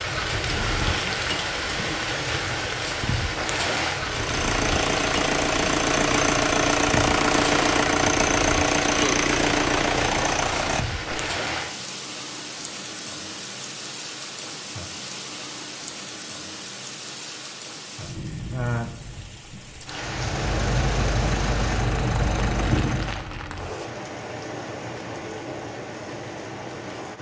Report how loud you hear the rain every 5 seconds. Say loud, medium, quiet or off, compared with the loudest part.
loud, loud, medium, medium, medium, medium.